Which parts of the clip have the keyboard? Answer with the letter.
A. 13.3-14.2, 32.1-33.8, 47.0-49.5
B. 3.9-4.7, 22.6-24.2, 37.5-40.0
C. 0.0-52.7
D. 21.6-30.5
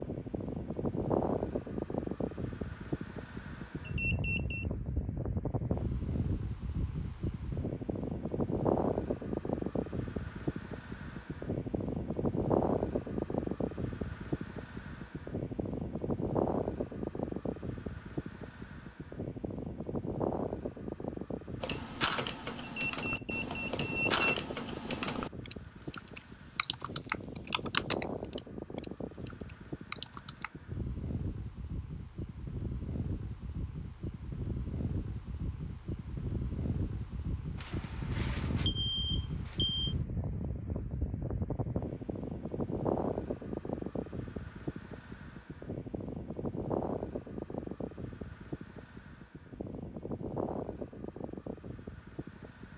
D.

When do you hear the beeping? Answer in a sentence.
You can hear the beeping from 3.9 to 4.7 s, from 22.6 to 24.2 s and from 37.5 to 40.0 s.